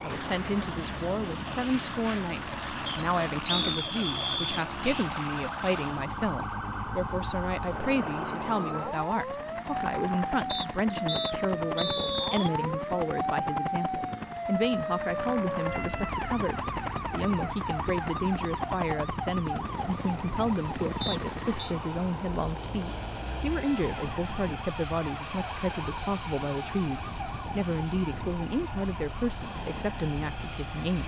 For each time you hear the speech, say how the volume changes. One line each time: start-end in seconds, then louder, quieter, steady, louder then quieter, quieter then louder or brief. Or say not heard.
0.0-31.0 steady.